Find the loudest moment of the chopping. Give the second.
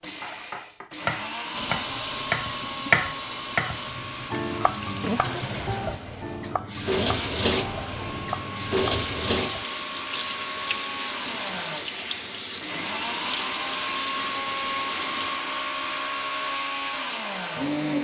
3 s.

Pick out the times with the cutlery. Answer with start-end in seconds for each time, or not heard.
not heard.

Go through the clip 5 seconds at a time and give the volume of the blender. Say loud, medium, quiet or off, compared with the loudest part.
medium, medium, loud, loud.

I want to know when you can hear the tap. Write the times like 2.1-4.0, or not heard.
1.5-15.4.